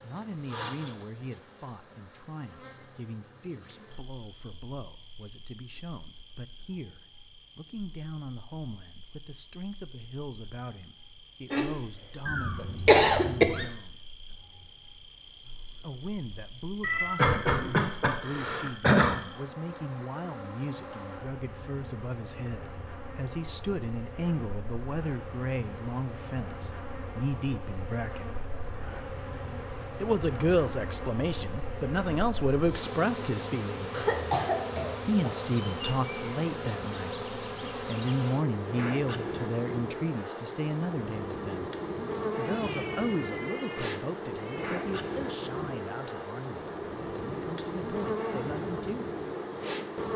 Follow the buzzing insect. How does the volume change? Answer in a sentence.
The loudness of the buzzing insect goes up.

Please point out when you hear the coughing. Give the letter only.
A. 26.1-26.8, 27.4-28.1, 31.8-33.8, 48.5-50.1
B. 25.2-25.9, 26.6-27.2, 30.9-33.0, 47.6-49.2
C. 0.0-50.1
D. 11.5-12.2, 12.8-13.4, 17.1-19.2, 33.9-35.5
D.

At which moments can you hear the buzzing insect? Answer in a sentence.
You can hear the buzzing insect from 0.0 to 50.1 s.